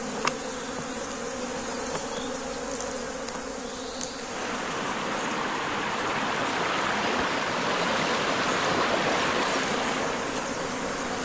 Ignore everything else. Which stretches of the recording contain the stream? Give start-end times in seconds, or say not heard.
4.2-11.2.